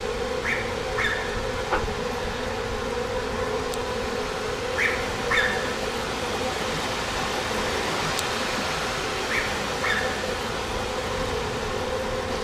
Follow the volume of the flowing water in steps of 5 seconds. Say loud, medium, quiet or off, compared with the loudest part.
medium, loud, loud.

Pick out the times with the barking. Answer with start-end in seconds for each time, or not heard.
0.4-1.4, 4.8-5.8, 9.2-10.2.